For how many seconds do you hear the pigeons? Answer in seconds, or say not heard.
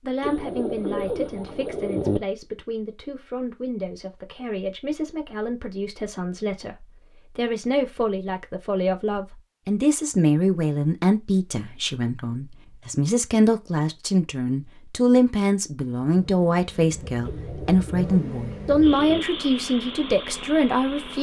4 s.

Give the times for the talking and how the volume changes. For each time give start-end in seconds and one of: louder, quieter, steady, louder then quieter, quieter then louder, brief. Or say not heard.
0.0-21.1 louder.